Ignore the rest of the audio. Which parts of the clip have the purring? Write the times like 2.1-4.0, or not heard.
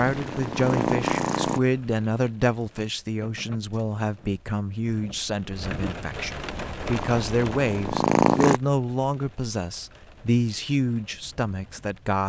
0.0-1.6, 6.5-8.6.